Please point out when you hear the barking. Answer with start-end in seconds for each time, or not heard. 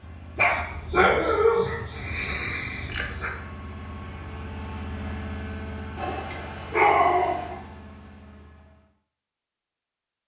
0.3-3.3, 6.0-7.5.